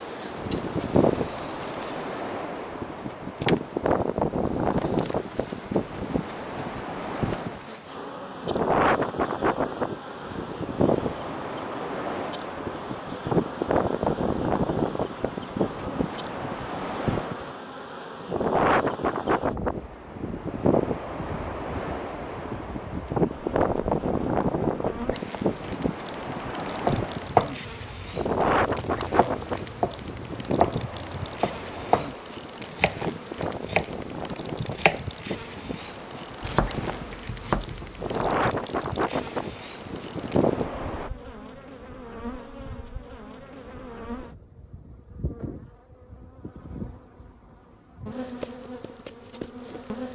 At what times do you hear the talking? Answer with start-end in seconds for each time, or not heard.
not heard.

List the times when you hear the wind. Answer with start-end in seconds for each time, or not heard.
0.0-41.1.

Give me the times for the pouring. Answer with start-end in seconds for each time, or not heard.
1.1-2.0.